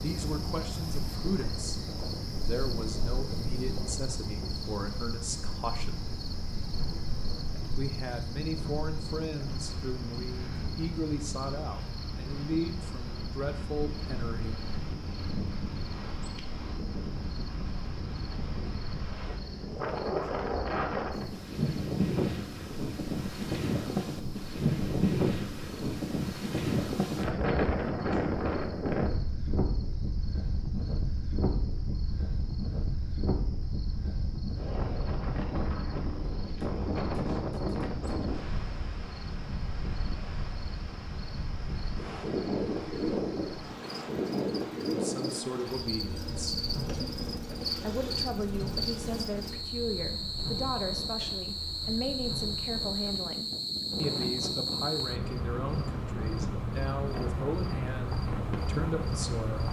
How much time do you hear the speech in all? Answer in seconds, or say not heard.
26 s.